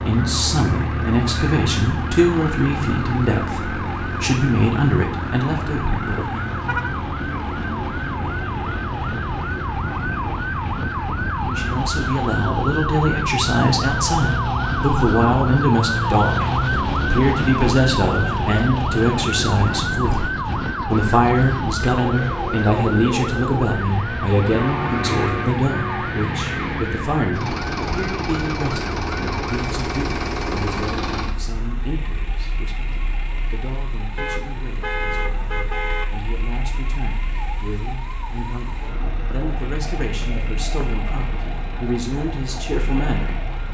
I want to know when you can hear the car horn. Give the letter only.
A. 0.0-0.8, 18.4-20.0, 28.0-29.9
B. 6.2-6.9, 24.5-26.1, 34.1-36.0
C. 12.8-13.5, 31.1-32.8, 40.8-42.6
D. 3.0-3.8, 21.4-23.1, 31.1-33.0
B.